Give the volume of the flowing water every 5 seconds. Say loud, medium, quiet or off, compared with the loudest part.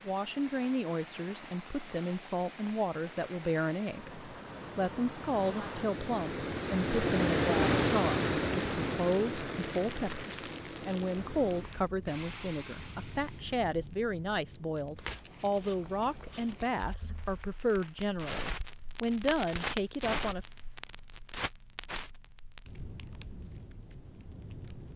quiet, loud, quiet, off, off.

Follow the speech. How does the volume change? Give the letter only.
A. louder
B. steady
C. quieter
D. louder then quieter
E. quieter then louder
B.